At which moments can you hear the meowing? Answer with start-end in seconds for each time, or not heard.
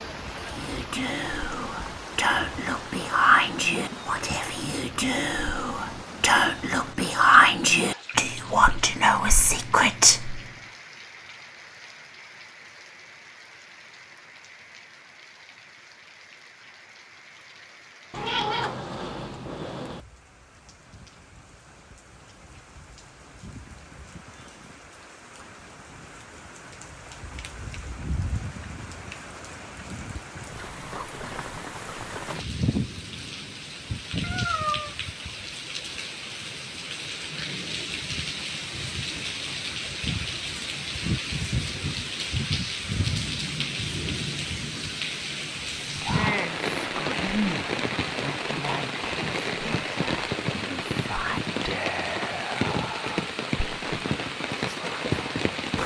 18.1-20.0, 34.2-35.0.